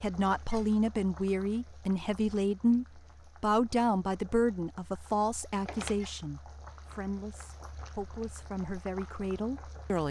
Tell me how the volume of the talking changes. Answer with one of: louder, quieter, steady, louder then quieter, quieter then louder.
quieter.